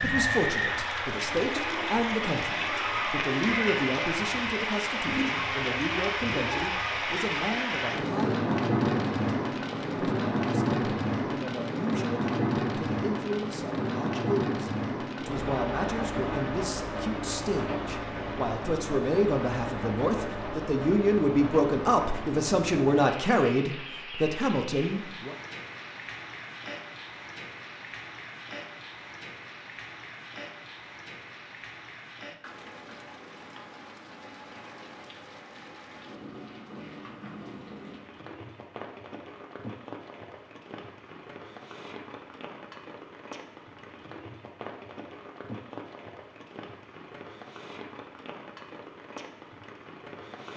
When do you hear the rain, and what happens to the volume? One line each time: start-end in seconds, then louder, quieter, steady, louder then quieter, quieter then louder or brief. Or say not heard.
0.0-50.5 quieter.